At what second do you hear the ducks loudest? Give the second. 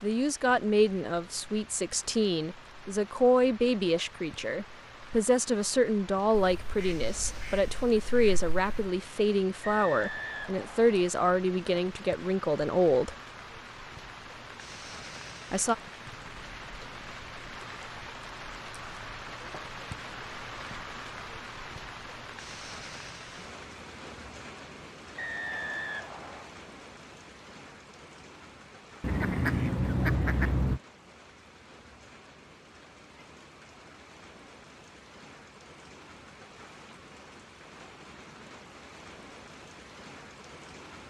30 s.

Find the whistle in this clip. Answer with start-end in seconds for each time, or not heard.
9.6-10.9, 25.1-26.5.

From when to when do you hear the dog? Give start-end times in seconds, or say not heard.
not heard.